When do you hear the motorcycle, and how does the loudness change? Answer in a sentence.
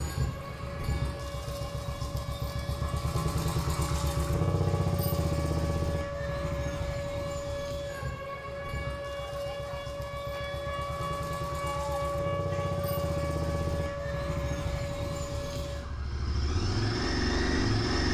The motorcycle can be heard from 0.0 to 18.0 s, getting quieter then louder.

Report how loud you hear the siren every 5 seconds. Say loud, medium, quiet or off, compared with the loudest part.
medium, loud, loud, medium.